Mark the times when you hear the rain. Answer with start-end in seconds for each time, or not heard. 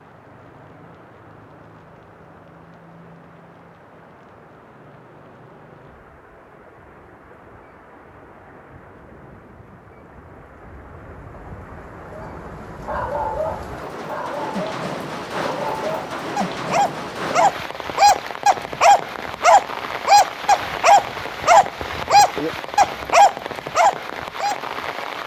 0.0-25.2.